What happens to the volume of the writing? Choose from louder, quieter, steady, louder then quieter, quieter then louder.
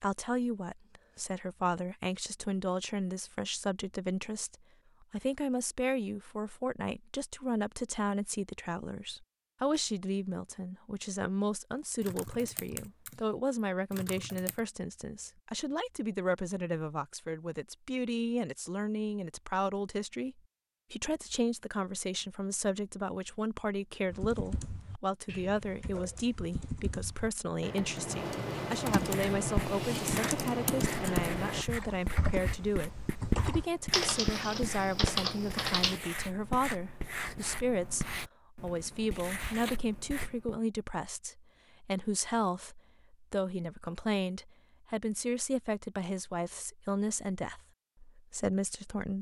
quieter.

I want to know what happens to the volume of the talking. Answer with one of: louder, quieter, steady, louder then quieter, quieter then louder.
steady.